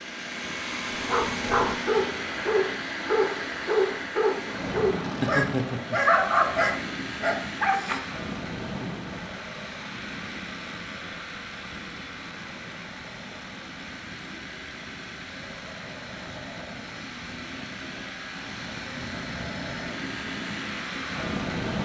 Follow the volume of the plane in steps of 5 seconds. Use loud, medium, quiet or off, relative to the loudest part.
loud, loud, medium, medium, loud.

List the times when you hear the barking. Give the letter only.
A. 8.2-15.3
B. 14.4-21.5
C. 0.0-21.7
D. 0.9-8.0
D.